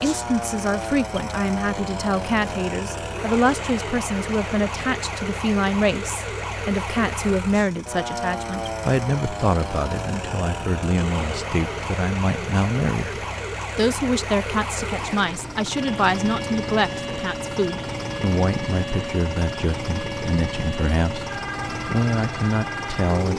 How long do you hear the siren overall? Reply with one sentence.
The siren can be heard for 23 seconds in total.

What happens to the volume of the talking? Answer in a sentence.
The loudness of the talking stays about the same.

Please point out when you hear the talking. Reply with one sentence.
You can hear the talking from 0.0 to 23.3 s.